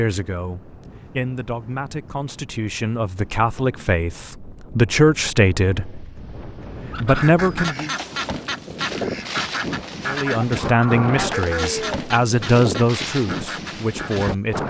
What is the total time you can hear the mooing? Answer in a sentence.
The mooing can be heard for 2 seconds in total.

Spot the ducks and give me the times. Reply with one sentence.
You can hear the ducks from 6.9 to 14.5 s.